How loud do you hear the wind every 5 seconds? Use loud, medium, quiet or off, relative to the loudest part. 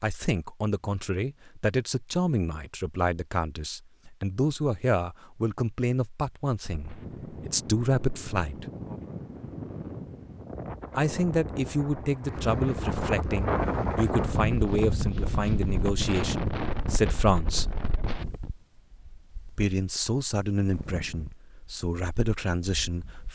off, medium, loud, loud, quiet.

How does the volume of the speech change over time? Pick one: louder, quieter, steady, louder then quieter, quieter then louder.
steady.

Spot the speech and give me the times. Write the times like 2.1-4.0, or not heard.
0.0-8.7, 10.9-17.8, 19.5-23.3.